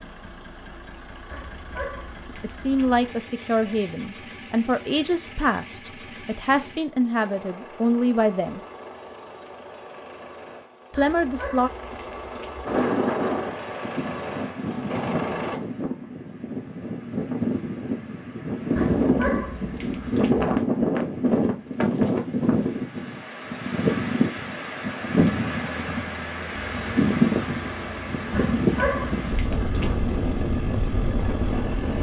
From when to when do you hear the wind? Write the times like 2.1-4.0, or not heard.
12.7-31.9.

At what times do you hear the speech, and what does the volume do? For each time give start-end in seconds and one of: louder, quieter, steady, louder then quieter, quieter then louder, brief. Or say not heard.
2.4-8.6 steady
10.9-11.7 brief.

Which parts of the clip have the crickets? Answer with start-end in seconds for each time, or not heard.
not heard.